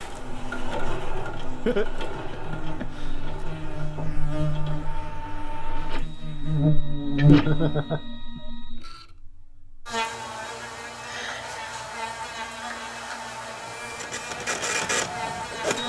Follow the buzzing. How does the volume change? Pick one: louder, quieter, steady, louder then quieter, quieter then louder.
louder then quieter.